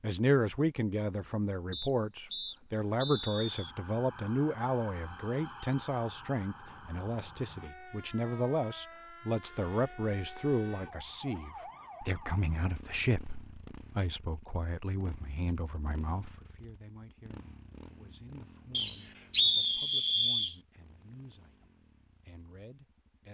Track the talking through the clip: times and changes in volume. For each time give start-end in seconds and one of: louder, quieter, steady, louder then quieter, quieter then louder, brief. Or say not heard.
0.0-23.2 quieter.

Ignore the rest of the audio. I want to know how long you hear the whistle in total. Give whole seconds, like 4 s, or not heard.
4 s.